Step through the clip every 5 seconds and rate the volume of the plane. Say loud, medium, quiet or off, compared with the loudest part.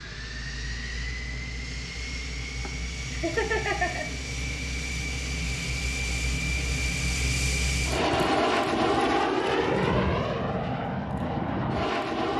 medium, loud, loud.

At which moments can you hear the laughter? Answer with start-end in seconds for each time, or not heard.
2.6-4.0.